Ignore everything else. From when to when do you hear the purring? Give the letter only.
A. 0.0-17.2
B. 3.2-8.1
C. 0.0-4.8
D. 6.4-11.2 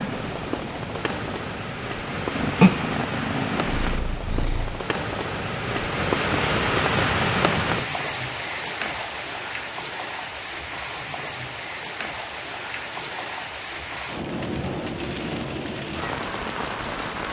C.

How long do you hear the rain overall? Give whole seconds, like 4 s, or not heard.
17 s.